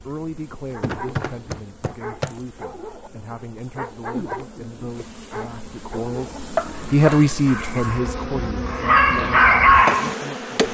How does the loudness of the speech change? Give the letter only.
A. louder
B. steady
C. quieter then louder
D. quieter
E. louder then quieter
E.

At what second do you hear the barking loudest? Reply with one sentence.
The loudest moment of the barking is at 10 seconds.